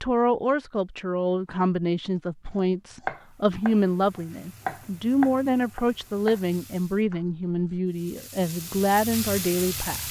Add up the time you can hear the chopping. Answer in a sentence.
You can hear the chopping for 5 seconds altogether.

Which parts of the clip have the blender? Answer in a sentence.
You can't hear the blender here.